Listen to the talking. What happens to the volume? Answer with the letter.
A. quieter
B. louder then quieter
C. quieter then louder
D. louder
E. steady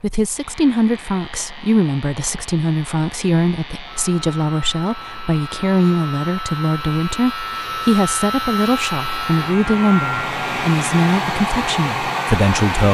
E.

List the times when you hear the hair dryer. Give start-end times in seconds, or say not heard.
0.1-12.8.